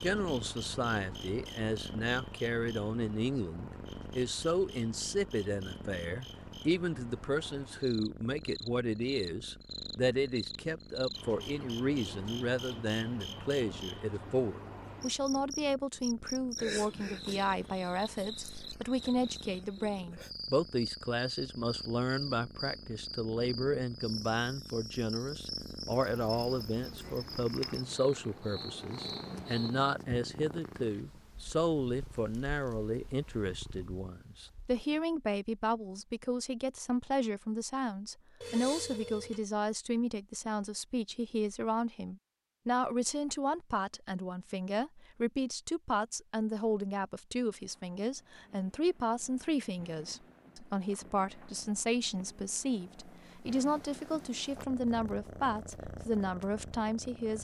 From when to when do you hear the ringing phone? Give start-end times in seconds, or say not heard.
38.4-39.5.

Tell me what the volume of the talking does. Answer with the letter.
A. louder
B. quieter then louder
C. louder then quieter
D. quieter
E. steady
E.